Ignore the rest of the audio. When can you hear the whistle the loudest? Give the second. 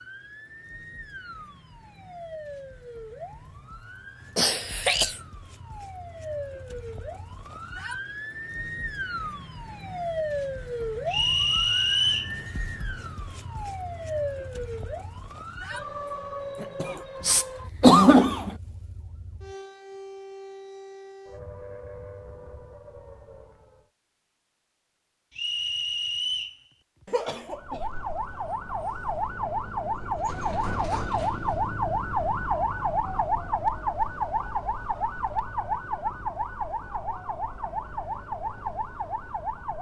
12 s.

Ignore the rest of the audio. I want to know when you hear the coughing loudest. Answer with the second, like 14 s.
18 s.